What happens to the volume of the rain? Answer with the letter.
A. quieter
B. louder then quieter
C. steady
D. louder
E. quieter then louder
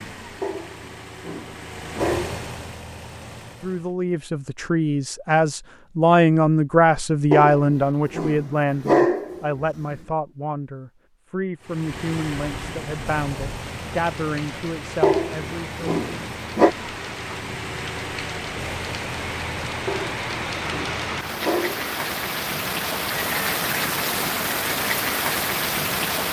D.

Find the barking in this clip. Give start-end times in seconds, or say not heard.
0.4-2.5, 7.3-9.9, 15.0-16.8, 19.9-21.9.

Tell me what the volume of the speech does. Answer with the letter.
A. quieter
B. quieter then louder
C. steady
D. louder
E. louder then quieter
A.